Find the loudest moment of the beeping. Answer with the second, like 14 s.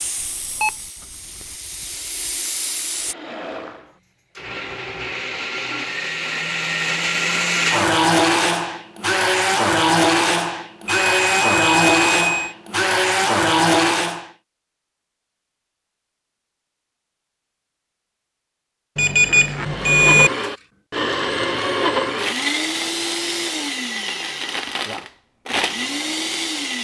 20 s.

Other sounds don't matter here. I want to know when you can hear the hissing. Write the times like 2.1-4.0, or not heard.
0.0-3.1.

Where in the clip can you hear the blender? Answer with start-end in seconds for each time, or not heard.
3.0-14.3, 19.6-26.8.